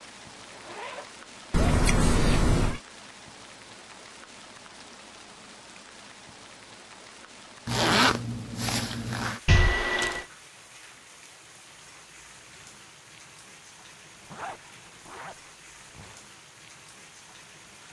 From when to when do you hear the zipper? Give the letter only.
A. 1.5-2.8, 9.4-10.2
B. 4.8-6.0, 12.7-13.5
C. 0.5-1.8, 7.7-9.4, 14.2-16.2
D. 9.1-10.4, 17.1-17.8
C.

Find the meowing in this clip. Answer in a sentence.
The meowing can be heard from 1.5 to 2.8 s and from 9.4 to 10.2 s.